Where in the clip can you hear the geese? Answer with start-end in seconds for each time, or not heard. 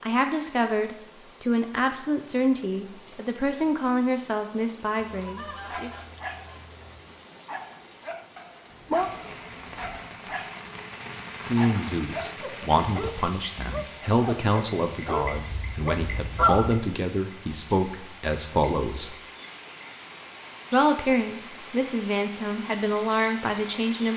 5.1-7.0, 15.3-16.8.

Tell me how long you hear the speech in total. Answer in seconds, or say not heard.
17 s.